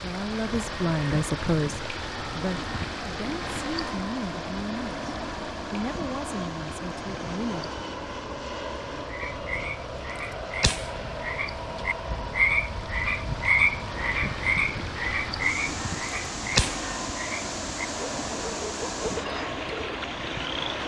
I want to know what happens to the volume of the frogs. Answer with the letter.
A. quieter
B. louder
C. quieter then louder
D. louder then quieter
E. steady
D.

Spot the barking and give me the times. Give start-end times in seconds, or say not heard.
not heard.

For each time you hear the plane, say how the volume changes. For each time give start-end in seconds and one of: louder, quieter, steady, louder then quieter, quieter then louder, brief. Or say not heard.
0.1-20.8 steady.